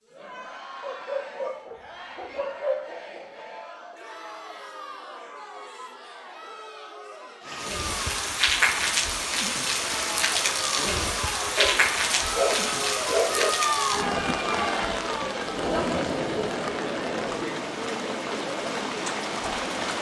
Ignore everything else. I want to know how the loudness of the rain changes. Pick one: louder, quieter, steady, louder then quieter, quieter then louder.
quieter.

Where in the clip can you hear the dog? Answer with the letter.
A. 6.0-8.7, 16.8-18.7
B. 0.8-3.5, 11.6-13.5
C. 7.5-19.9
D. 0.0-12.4
B.